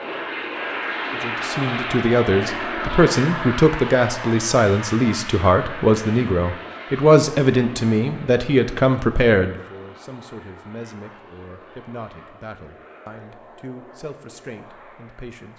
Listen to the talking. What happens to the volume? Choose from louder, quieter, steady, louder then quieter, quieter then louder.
quieter.